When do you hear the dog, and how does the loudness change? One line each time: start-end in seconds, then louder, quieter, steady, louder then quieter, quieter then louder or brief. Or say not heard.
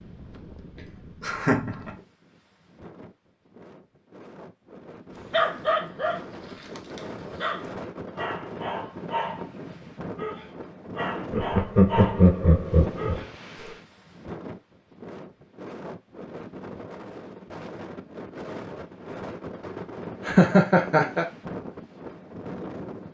5.3-13.8 steady.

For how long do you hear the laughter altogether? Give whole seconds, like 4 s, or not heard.
4 s.